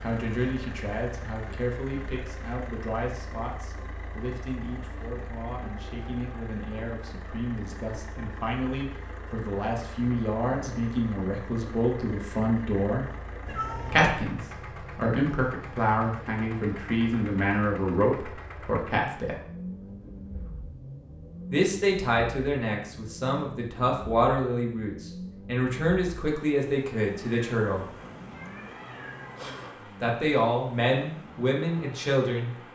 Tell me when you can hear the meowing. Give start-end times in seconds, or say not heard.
13.4-14.3, 27.1-29.8.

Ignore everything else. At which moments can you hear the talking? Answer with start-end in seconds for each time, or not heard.
0.0-13.1, 13.9-19.4, 21.5-27.9, 30.0-32.5.